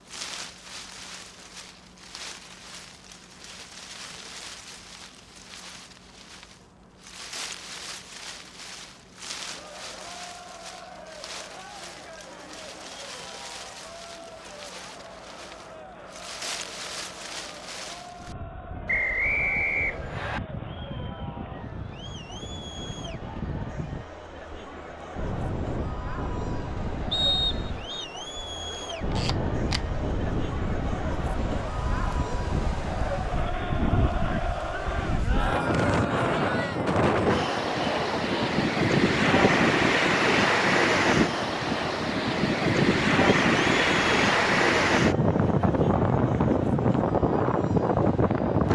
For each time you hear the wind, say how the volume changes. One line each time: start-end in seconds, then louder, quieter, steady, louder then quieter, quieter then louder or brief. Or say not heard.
0.0-48.7 louder.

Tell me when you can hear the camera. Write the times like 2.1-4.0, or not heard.
28.7-29.8.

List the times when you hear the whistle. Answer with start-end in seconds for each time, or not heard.
18.9-20.4, 27.1-28.1.